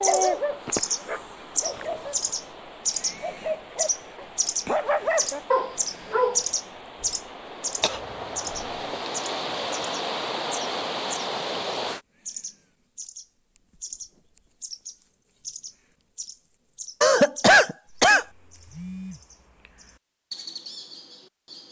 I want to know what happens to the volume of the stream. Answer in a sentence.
The volume of the stream goes up.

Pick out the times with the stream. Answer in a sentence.
The stream can be heard from 0.0 to 12.0 s.